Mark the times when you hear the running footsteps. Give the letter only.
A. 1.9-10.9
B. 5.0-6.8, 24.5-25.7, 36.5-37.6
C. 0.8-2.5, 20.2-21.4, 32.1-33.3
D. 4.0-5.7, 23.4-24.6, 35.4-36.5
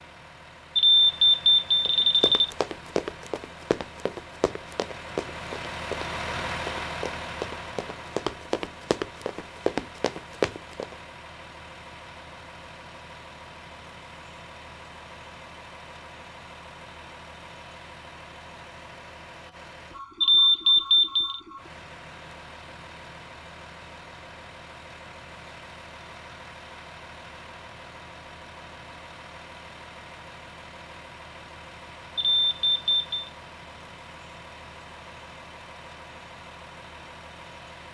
A.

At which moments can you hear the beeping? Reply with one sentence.
You can hear the beeping from 0.8 to 2.5 s, from 20.2 to 21.4 s and from 32.1 to 33.3 s.